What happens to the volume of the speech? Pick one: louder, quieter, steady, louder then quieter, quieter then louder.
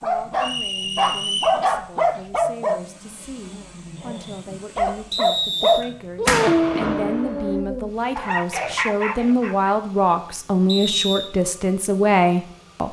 louder.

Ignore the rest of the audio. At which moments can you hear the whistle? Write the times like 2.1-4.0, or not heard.
0.4-1.6, 5.1-5.8, 10.7-11.3.